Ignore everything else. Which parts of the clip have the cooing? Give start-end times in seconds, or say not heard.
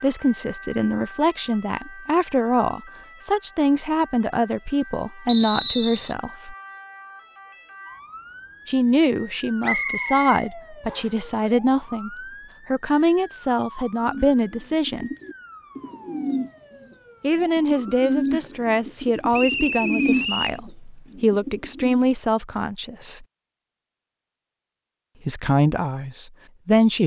14.0-22.1.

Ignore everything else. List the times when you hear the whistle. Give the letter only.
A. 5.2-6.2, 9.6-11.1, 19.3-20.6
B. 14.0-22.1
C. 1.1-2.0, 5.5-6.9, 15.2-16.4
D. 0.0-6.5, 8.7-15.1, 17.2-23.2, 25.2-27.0
A.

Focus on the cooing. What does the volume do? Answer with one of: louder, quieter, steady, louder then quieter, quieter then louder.
louder then quieter.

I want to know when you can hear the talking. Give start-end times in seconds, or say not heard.
0.0-6.5, 8.7-15.1, 17.2-23.2, 25.2-27.0.